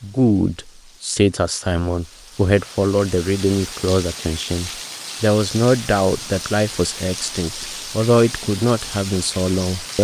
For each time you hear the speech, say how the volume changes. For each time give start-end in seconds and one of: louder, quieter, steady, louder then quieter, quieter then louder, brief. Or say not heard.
0.0-10.0 steady.